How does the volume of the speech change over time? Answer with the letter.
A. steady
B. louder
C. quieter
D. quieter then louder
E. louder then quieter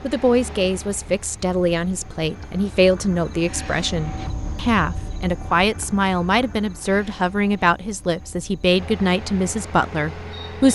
A.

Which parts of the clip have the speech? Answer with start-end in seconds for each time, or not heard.
0.0-10.7.